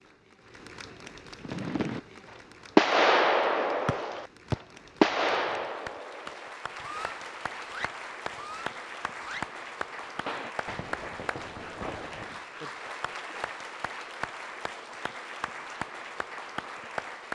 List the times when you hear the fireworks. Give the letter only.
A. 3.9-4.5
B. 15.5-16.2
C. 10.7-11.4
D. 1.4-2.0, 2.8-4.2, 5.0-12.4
D.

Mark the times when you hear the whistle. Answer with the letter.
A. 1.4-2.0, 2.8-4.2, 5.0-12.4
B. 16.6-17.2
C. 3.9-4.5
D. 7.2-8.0
C.